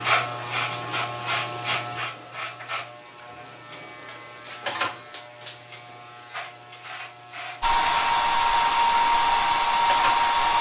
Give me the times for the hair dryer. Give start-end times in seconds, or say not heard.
7.6-10.5.